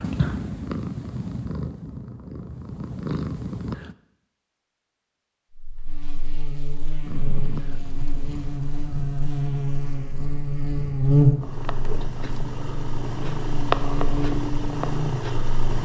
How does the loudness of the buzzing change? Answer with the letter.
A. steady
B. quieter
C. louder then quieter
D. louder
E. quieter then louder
C.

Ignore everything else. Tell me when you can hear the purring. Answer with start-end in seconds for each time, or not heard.
0.0-4.0, 7.0-15.8.